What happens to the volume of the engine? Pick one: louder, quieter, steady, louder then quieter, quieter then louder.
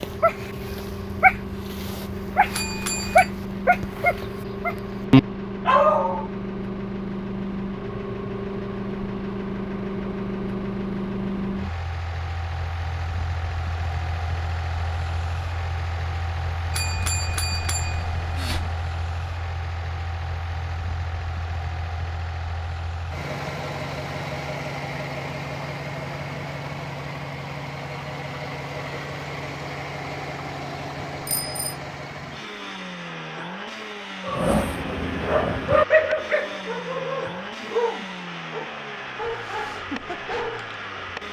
steady.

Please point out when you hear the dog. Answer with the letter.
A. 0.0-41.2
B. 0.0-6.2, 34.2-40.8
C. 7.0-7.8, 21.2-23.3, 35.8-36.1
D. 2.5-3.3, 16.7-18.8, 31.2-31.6
B.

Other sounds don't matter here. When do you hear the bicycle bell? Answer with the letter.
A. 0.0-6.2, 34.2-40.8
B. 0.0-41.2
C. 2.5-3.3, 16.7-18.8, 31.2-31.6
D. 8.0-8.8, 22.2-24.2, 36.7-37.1
C.